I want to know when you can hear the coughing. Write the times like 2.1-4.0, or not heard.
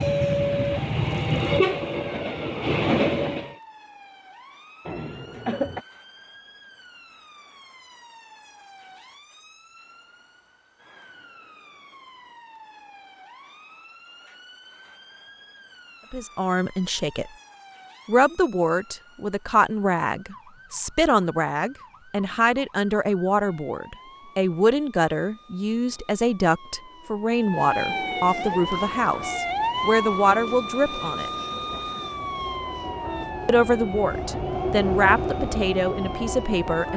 4.8-5.8.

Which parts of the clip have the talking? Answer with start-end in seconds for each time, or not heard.
16.1-17.3, 18.1-31.3, 33.5-36.9.